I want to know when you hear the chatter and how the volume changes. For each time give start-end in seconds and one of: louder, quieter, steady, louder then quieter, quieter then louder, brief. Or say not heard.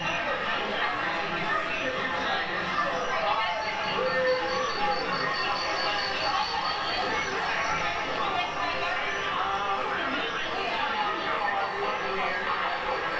0.0-13.1 steady.